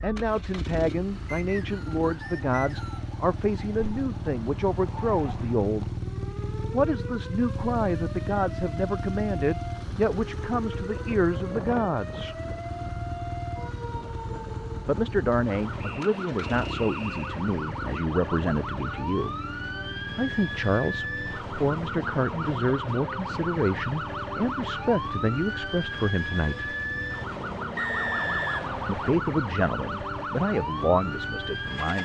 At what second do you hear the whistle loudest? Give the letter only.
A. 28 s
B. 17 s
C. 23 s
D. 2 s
A.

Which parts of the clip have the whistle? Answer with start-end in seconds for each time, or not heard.
1.2-3.1, 15.8-17.4, 27.8-29.2.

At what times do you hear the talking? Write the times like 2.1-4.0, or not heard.
0.0-5.9, 6.7-12.3, 14.8-19.4, 20.1-26.8, 28.9-32.0.